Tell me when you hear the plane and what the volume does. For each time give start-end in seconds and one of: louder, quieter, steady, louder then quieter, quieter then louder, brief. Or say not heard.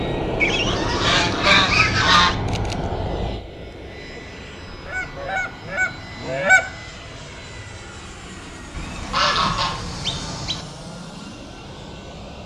0.0-12.4 quieter.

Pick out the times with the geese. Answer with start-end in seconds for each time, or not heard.
0.4-2.4, 4.8-6.6, 8.8-10.7.